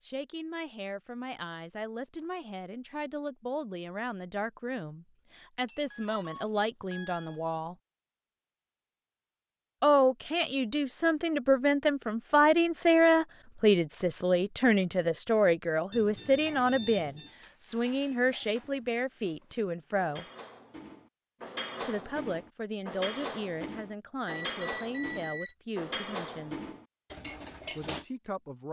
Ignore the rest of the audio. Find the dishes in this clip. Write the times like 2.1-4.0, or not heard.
16.4-28.1.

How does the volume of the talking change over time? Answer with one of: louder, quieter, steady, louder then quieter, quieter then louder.
louder then quieter.